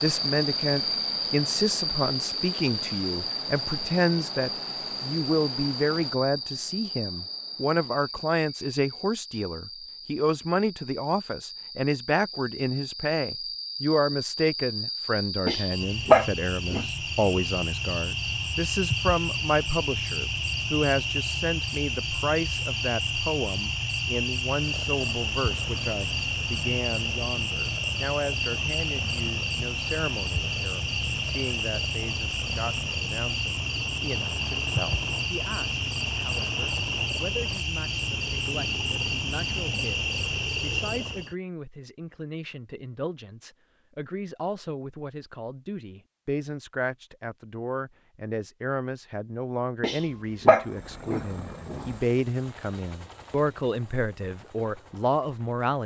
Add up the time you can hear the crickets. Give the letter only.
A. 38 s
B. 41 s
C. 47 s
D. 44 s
B.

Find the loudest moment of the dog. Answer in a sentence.
The volume of the dog peaks at 16 seconds.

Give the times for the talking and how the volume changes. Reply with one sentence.
You can hear the talking from 0.0 to 55.8 s, getting quieter then louder.